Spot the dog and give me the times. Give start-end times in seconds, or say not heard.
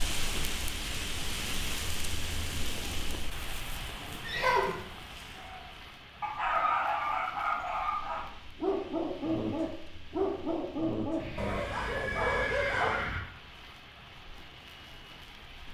5.3-13.1.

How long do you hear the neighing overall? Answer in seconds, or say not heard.
4 s.